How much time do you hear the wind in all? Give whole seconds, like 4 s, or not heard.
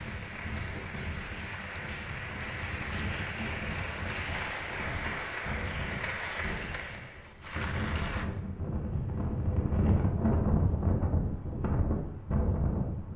13 s.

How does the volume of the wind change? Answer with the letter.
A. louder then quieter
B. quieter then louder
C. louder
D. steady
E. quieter
C.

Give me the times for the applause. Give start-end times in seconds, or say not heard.
0.0-8.3.